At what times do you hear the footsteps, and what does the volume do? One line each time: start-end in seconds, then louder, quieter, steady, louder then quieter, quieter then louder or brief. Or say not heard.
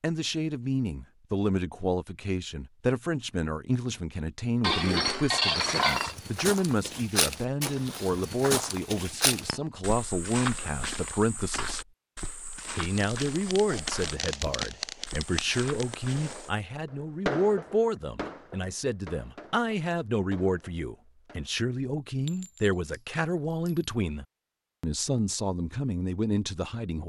5.8-16.4 quieter.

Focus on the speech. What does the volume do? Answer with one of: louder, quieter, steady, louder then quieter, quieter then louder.
steady.